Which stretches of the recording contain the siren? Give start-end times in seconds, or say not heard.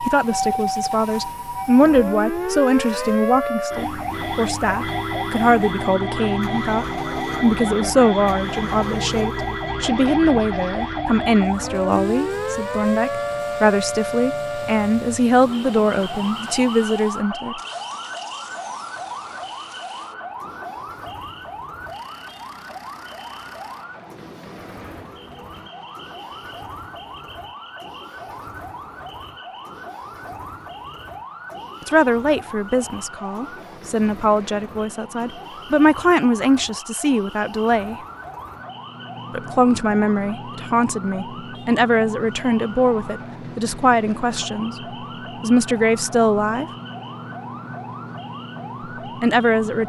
0.0-49.8.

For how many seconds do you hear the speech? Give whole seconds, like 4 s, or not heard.
31 s.